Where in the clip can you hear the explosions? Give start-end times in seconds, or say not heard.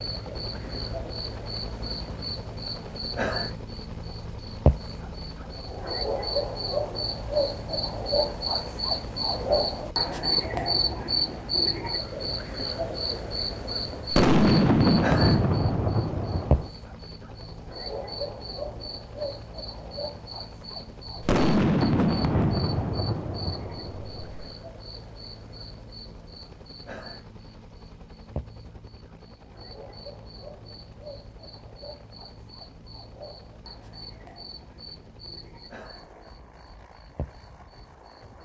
14.1-16.7, 21.2-24.5.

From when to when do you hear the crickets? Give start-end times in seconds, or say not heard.
0.0-38.4.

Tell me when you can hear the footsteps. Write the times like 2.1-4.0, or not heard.
not heard.